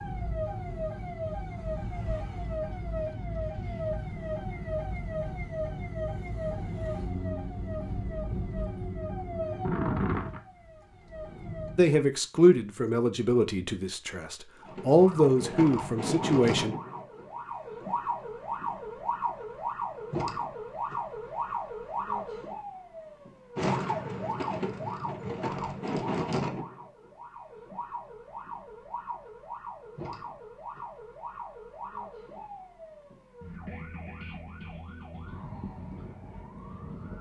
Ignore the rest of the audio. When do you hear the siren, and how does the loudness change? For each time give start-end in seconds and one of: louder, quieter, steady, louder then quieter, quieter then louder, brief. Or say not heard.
0.0-11.9 steady
14.6-37.1 quieter.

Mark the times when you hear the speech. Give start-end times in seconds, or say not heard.
11.8-16.8.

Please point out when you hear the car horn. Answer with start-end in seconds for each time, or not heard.
not heard.